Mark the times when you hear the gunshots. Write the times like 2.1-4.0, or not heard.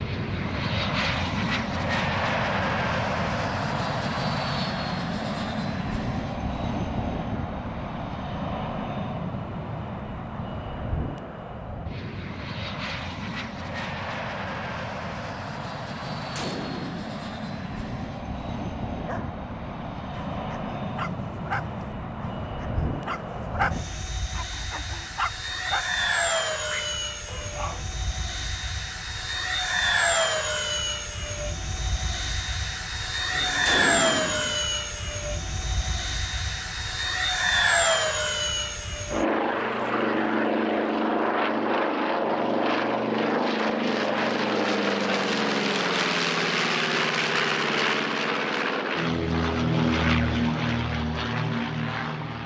16.0-17.1, 33.3-34.6.